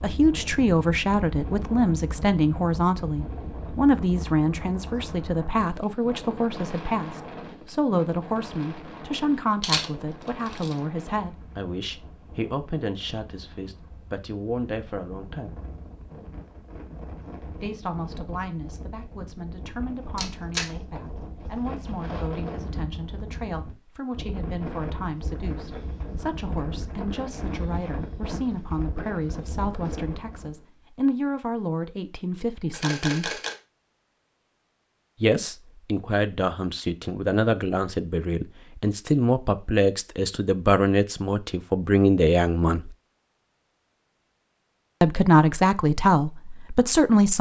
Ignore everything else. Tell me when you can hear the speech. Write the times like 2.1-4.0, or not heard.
0.0-15.6, 17.5-33.4, 35.2-42.9, 45.0-47.3.